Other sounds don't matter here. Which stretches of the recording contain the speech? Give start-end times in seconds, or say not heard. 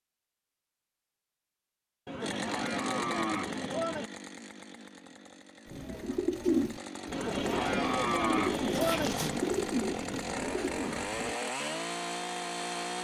not heard.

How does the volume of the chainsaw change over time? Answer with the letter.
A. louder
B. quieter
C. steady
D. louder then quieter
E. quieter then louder
E.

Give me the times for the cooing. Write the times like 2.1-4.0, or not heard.
5.7-11.3.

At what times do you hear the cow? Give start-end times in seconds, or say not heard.
2.0-4.1, 7.1-9.2.